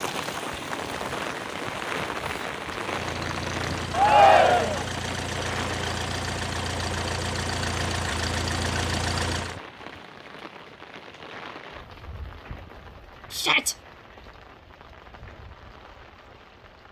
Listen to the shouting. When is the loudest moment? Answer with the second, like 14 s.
4 s.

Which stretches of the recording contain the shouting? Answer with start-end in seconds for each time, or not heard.
3.9-4.8, 13.3-13.8.